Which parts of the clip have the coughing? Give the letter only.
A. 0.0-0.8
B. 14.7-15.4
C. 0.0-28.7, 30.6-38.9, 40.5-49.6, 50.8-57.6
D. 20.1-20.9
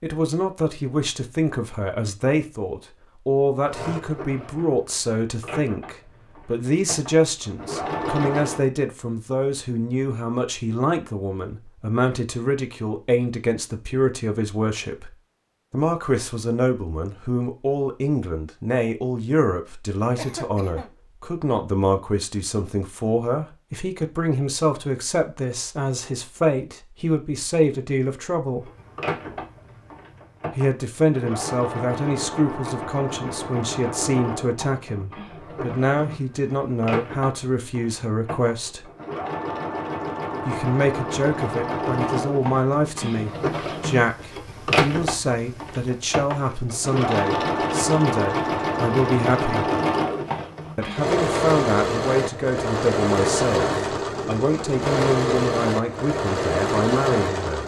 D.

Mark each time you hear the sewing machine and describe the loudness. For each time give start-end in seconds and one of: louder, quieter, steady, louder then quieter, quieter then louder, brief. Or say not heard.
3.6-8.7 quieter then louder
28.6-57.6 louder.